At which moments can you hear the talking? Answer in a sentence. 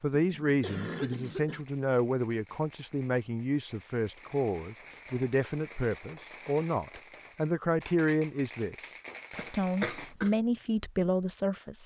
You can hear the talking from 0.0 to 8.8 s and from 9.3 to 11.8 s.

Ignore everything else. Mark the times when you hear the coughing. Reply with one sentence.
You can hear the coughing from 0.2 to 1.6 s and from 9.3 to 10.3 s.